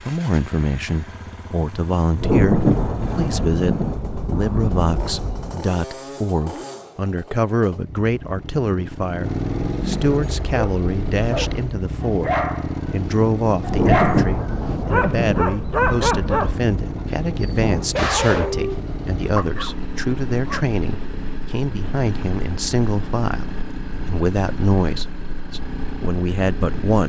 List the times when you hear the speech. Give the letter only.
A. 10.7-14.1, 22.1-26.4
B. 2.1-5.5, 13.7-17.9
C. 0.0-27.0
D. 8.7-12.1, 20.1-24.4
C.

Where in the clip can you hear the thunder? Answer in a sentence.
You can hear the thunder from 2.1 to 5.5 s and from 13.7 to 17.9 s.